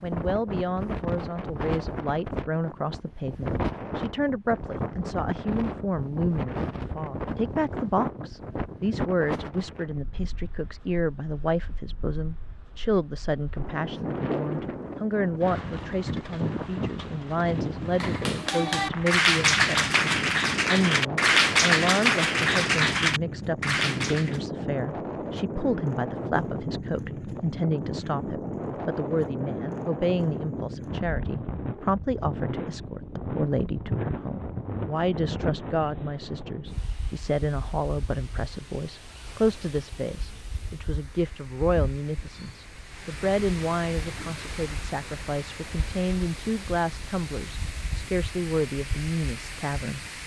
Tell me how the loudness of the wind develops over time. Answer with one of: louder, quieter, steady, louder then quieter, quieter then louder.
quieter.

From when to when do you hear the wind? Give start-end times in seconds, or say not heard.
0.0-50.2.